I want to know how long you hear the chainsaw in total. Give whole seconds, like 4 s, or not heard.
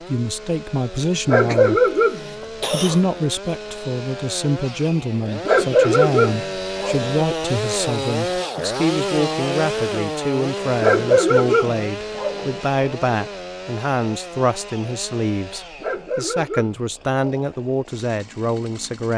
19 s.